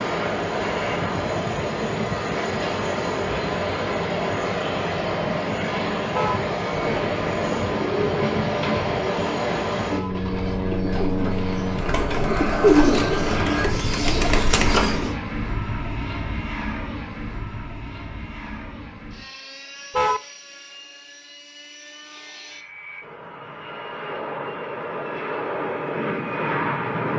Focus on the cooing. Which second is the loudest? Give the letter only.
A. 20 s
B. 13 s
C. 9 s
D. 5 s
B.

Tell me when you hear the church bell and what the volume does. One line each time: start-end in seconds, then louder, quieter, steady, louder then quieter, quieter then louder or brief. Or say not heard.
not heard.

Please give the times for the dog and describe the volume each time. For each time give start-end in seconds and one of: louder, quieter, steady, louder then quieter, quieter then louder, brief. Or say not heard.
not heard.